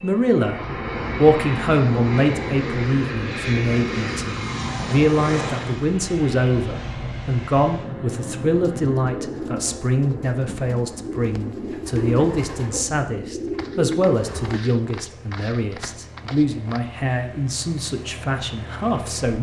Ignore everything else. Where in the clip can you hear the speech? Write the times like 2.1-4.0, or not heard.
0.0-19.3.